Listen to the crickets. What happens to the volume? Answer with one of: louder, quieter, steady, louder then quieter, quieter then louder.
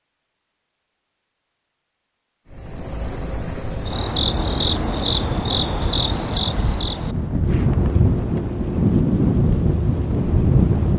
quieter.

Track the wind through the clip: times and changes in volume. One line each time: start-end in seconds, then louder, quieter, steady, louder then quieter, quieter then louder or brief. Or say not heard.
4.1-10.9 louder.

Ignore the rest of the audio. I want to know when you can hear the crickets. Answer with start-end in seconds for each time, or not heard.
2.5-10.9.